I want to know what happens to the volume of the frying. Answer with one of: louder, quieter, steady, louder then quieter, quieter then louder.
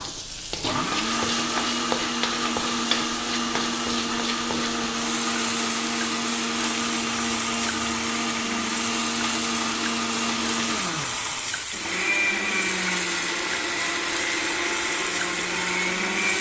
steady.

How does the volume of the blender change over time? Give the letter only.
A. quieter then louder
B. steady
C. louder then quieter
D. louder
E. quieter
B.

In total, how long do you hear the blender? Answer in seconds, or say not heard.
16 s.